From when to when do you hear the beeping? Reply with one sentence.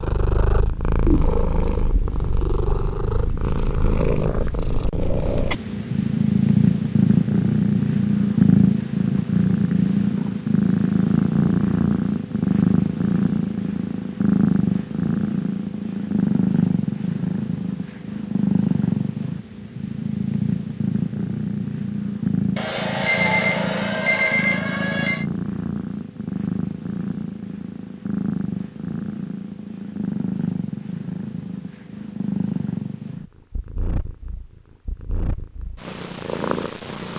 You can hear the beeping from 22.6 to 25.2 s.